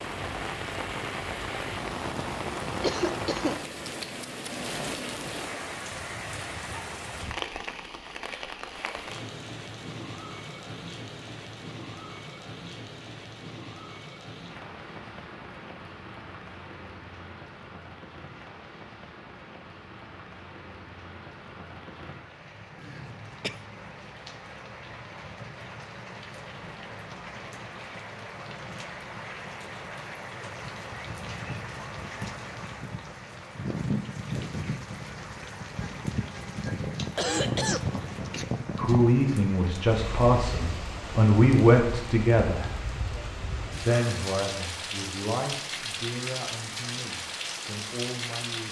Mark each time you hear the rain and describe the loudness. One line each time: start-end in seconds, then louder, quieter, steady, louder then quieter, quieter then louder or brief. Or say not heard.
0.0-48.6 quieter then louder.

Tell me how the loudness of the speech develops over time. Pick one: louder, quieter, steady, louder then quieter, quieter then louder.
quieter.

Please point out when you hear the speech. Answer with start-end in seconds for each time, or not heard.
38.8-42.7, 43.8-48.6.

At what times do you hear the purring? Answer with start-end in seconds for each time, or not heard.
not heard.